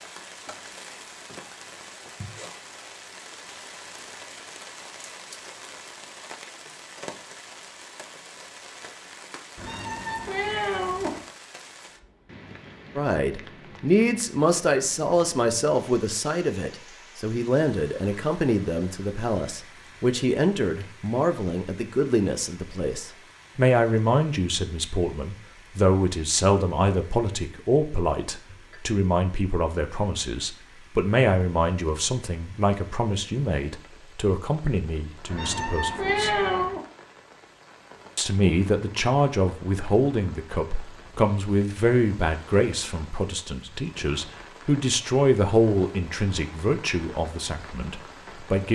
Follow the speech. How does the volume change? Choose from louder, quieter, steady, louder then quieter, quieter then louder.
steady.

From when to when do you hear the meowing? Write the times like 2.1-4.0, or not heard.
9.6-11.2, 35.2-36.8.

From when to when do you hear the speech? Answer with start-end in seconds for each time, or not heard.
12.9-36.4, 38.1-48.7.